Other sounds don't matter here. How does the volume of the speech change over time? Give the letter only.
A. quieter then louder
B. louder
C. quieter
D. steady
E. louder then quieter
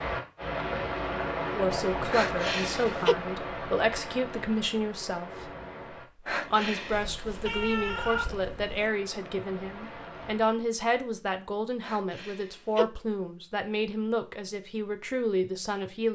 D.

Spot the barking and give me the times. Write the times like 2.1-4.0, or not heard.
not heard.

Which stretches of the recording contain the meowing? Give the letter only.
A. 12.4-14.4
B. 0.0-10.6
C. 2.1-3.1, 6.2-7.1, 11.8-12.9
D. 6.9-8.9
D.